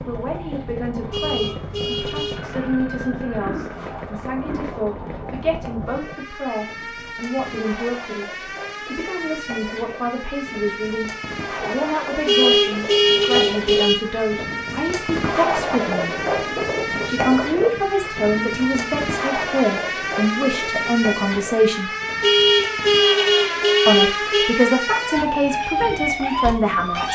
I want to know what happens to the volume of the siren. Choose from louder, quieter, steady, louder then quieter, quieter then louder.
louder.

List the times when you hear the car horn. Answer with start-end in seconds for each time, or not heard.
1.1-2.5, 12.2-14.0, 22.2-24.5.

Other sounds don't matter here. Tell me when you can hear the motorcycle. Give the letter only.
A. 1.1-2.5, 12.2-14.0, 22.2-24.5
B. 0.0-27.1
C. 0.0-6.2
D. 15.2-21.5
C.